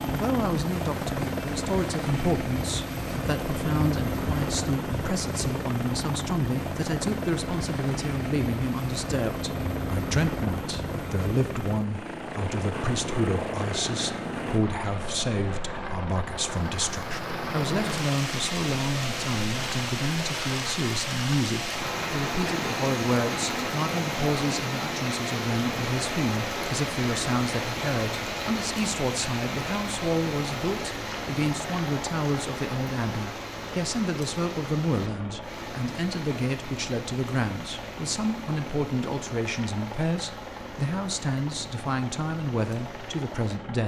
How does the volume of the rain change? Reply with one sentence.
The volume of the rain goes down.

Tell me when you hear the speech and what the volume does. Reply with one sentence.
The speech can be heard from 0.1 to 43.8 s, at a steady volume.